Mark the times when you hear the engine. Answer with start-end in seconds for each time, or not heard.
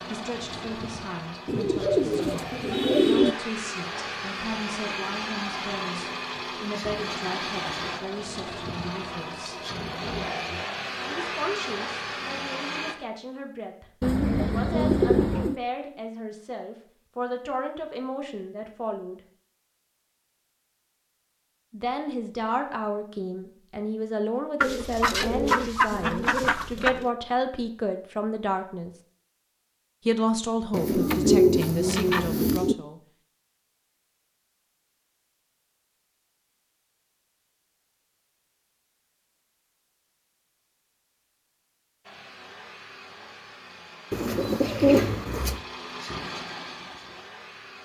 0.0-12.9, 42.0-47.8.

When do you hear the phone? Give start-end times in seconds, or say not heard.
not heard.